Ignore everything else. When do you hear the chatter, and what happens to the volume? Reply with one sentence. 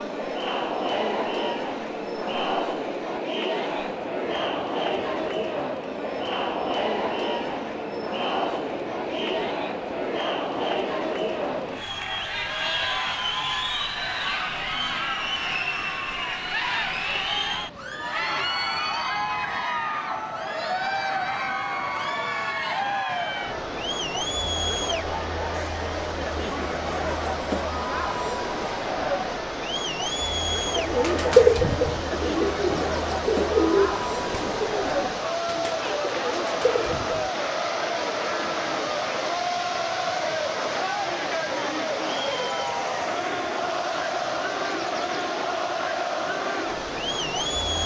You can hear the chatter from 0.0 to 47.8 s, at a steady volume.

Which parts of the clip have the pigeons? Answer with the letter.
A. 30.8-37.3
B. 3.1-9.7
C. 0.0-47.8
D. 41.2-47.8
A.